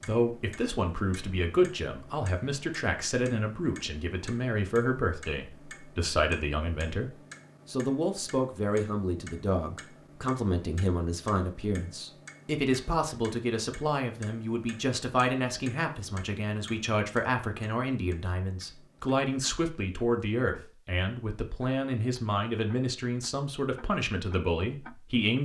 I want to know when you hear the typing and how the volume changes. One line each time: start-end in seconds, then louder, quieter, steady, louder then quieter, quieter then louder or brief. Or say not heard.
not heard.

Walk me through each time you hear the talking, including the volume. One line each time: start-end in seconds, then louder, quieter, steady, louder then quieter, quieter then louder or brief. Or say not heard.
0.0-25.3 steady.